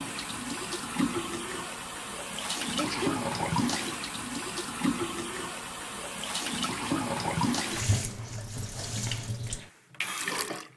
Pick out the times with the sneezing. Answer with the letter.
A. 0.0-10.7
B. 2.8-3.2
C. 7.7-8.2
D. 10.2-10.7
B.